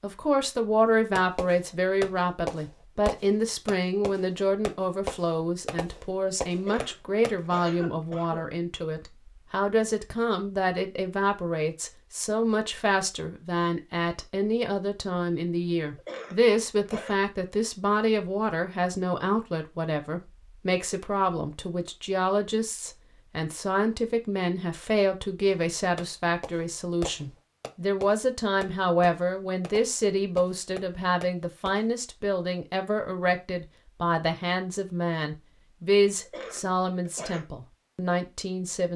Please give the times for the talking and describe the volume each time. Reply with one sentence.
The talking can be heard from 0.0 to 38.9 s, at a steady volume.